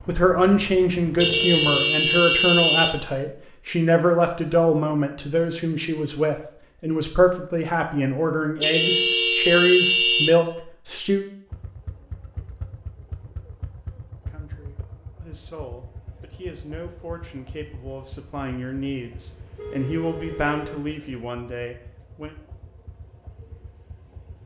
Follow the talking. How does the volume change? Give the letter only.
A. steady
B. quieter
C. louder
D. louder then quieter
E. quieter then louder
E.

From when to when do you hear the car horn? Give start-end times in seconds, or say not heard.
1.1-3.0, 8.6-10.3, 19.6-20.9.